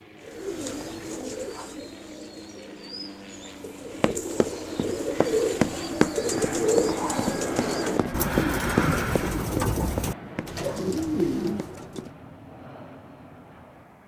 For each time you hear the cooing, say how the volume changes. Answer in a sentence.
You can hear the cooing from 0.2 to 12.1 s, getting louder.